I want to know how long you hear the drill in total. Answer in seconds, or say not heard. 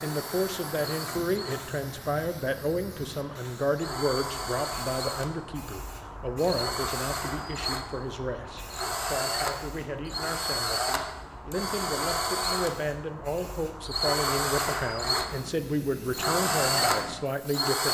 18 s.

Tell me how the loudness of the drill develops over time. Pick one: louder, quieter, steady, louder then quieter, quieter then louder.
louder.